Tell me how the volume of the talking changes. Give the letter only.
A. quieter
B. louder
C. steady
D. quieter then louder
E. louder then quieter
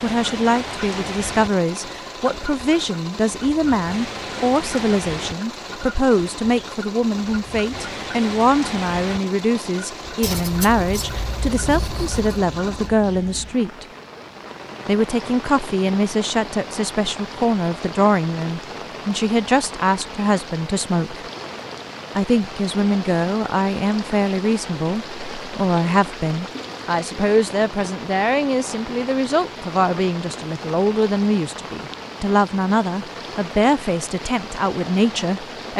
C.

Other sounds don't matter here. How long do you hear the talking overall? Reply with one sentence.
You can hear the talking for 34 seconds altogether.